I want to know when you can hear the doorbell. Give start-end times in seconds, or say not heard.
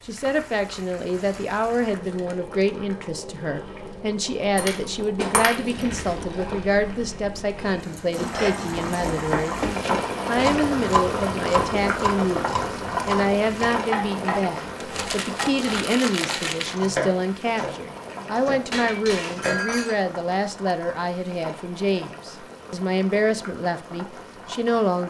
not heard.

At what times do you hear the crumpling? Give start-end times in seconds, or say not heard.
5.6-7.0, 14.8-16.8.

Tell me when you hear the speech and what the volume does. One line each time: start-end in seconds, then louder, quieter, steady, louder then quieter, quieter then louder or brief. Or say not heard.
0.1-25.0 steady.